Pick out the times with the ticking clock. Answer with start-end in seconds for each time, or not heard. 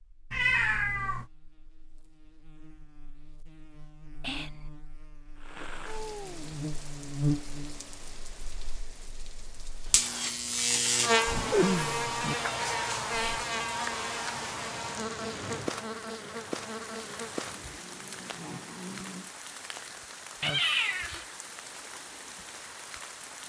not heard.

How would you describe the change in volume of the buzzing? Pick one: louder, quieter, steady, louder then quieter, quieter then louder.
louder then quieter.